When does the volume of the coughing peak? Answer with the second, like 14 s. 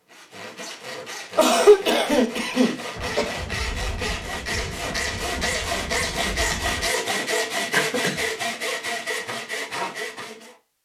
2 s.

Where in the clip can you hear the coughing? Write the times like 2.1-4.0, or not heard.
1.4-3.4, 7.7-8.2.